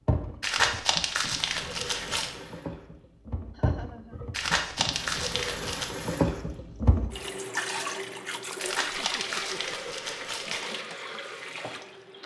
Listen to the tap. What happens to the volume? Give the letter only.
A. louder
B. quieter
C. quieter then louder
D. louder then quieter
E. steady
D.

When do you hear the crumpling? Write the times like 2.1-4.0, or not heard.
0.4-2.3, 4.3-5.9, 8.6-10.7.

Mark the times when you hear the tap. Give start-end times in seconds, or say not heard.
0.1-12.2.